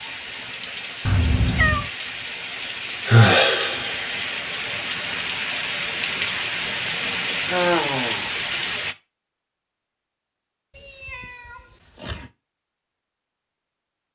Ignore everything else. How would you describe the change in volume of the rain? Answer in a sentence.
The volume of the rain goes up.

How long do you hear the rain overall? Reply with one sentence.
The rain can be heard for 9 seconds in total.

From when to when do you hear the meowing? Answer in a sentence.
The meowing can be heard from 1.1 to 1.9 s and from 10.7 to 12.3 s.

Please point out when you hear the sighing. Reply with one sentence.
The sighing can be heard from 2.6 to 4.3 s and from 7.5 to 8.3 s.